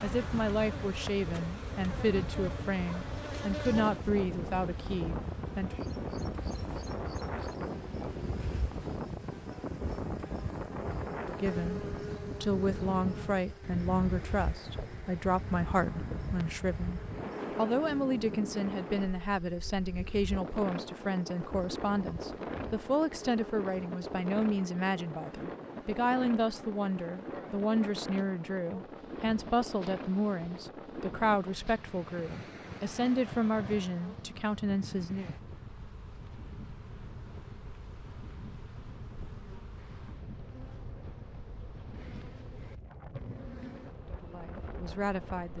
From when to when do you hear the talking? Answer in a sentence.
You can hear the talking from 0.0 to 5.8 s, from 11.2 to 35.3 s and from 44.0 to 45.5 s.